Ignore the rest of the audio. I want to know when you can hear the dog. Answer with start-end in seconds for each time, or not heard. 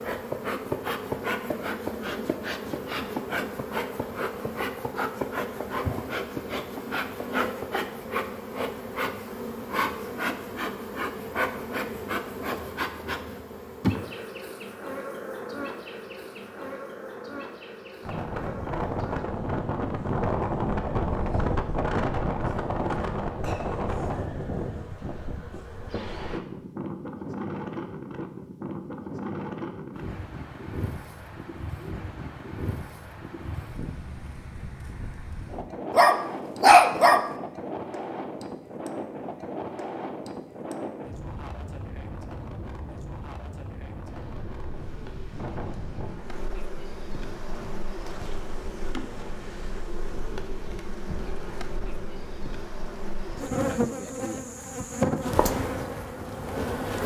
35.9-37.3.